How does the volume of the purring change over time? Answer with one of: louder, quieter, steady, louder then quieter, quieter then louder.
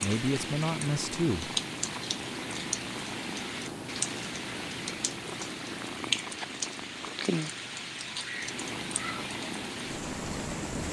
steady.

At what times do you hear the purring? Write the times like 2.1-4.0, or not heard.
0.0-10.8.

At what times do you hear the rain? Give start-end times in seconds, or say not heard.
0.0-10.8.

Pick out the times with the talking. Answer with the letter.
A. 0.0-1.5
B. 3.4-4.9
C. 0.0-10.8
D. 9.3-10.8
A.